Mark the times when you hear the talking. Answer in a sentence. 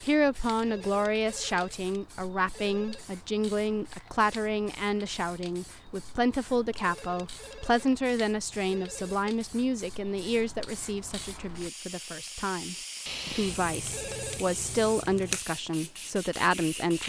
You can hear the talking from 0.0 to 17.0 s.